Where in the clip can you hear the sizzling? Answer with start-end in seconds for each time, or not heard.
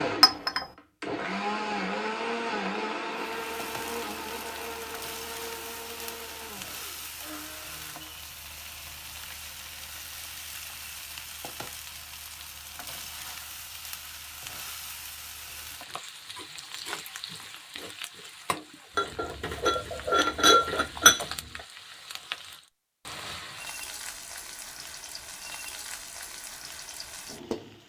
3.1-27.8.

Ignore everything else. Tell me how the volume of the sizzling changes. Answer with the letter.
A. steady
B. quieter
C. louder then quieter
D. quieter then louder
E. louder
A.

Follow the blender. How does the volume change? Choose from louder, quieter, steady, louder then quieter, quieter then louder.
quieter.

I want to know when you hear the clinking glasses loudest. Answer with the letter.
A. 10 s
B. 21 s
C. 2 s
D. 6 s
B.